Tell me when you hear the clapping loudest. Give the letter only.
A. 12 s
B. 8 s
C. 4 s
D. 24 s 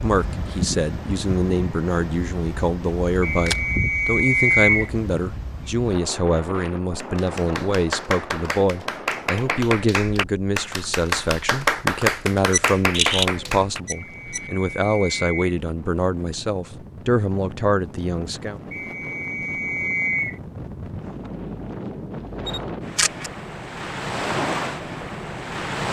A.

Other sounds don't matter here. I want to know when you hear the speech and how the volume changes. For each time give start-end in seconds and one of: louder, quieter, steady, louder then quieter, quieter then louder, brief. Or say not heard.
0.0-18.6 steady.